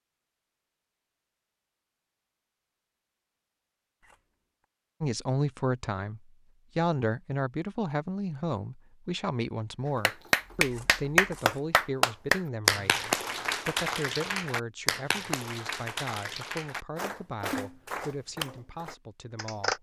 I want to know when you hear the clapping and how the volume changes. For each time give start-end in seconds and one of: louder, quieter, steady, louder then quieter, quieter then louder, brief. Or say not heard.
10.0-19.7 quieter.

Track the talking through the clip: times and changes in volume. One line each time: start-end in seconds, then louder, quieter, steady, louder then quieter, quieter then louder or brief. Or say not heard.
5.0-19.7 quieter.